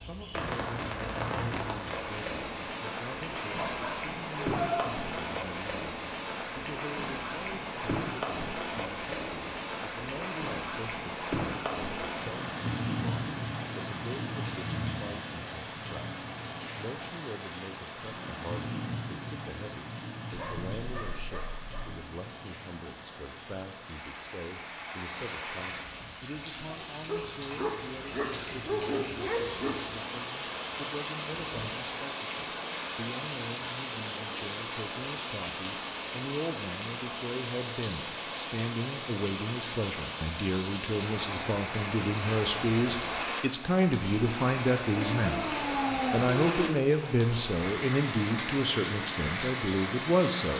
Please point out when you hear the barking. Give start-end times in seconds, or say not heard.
3.5-4.8, 20.3-21.9, 27.1-30.0, 44.9-46.8.